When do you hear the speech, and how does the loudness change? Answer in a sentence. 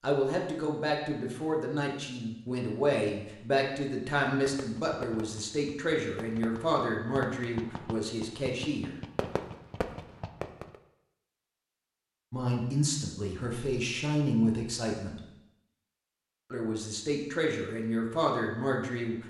The speech can be heard from 0.0 to 8.9 s, at a steady volume; briefly from 12.3 to 15.2 s; and briefly from 16.5 to 19.2 s.